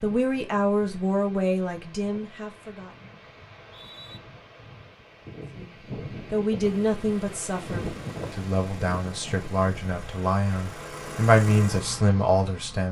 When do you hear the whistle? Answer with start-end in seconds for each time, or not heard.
3.5-4.2.